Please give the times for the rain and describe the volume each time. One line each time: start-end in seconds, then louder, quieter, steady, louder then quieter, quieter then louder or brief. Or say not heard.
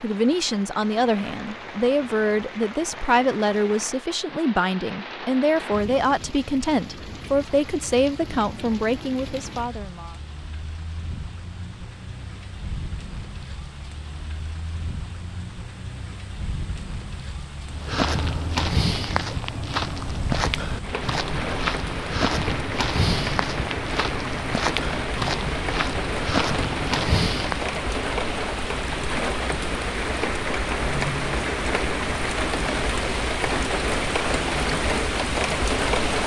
0.0-36.2 louder.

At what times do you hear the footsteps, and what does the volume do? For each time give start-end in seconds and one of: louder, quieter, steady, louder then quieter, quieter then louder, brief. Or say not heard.
17.7-27.6 steady.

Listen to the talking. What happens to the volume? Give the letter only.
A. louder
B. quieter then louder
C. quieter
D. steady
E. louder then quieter
D.